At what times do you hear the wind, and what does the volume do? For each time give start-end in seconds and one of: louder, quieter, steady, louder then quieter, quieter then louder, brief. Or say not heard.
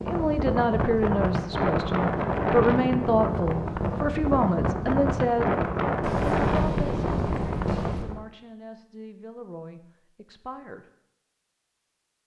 0.0-8.2 steady.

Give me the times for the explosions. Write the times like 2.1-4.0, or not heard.
6.0-8.1.